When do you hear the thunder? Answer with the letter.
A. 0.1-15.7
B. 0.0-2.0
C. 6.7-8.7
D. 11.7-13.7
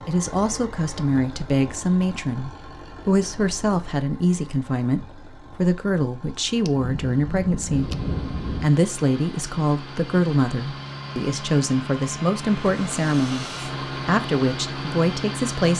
C.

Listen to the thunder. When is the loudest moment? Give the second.
8 s.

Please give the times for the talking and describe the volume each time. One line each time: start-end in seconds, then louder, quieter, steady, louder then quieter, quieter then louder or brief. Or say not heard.
0.1-15.7 steady.